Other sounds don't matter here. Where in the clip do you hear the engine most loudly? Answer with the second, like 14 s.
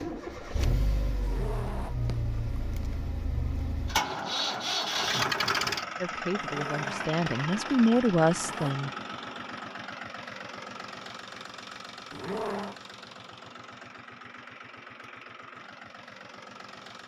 5 s.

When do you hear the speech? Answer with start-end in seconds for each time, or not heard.
6.0-8.9.